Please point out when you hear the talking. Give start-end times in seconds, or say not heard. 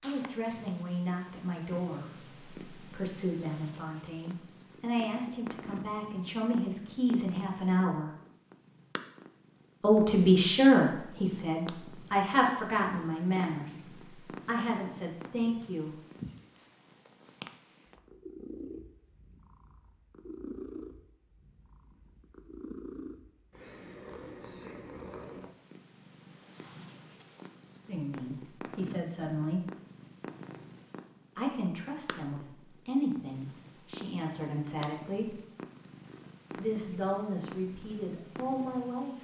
0.0-8.1, 9.8-15.9, 27.9-29.6, 31.4-35.4, 36.5-39.1.